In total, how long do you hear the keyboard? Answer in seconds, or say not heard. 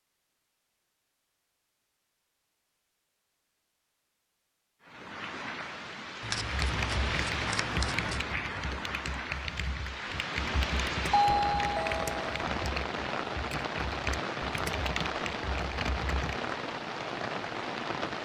10 s.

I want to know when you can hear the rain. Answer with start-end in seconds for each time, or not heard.
4.8-18.2.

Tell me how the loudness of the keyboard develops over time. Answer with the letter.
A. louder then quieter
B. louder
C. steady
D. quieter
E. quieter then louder
C.